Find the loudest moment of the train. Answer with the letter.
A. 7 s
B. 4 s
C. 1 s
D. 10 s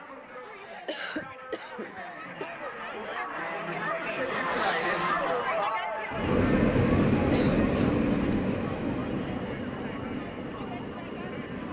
A.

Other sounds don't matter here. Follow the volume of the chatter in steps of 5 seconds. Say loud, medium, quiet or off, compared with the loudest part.
loud, loud, medium.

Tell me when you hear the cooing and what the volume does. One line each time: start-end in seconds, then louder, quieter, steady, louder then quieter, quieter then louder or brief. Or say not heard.
not heard.